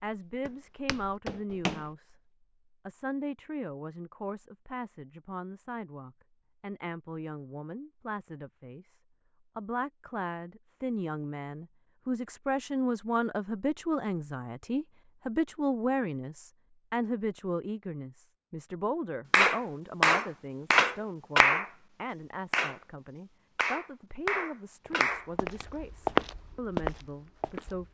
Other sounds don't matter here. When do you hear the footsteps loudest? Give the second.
26 s.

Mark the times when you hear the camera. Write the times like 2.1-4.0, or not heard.
not heard.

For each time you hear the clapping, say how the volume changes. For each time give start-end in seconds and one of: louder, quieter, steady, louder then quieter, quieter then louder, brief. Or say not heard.
19.3-25.2 quieter.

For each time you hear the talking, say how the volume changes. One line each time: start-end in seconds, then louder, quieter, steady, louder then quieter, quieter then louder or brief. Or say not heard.
0.0-2.1 brief
2.9-27.8 louder then quieter.